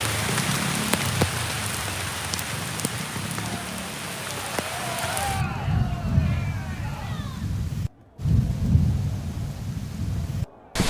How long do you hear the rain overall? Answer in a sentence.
The rain can be heard for 11 seconds in total.